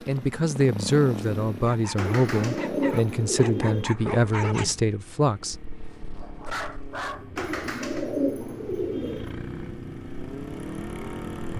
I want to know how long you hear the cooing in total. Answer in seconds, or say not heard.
4 s.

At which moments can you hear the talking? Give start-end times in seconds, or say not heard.
0.1-5.5.